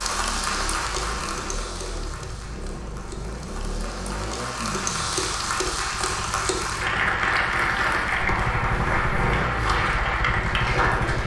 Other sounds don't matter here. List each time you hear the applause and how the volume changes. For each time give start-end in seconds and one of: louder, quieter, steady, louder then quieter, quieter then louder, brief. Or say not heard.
0.0-11.2 quieter then louder.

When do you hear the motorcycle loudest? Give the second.
9 s.